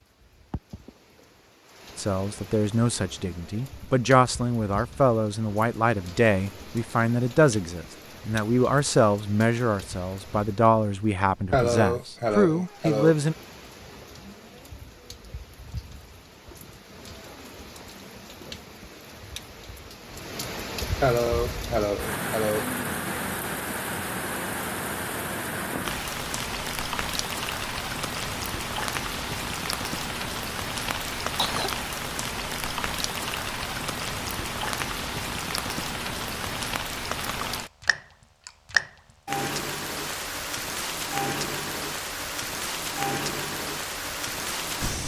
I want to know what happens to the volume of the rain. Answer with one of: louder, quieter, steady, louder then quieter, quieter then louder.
louder.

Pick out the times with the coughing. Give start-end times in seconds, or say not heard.
11.5-13.2, 21.0-22.6, 30.9-31.7.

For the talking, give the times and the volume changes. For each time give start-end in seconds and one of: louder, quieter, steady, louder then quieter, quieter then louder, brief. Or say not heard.
1.9-13.3 steady.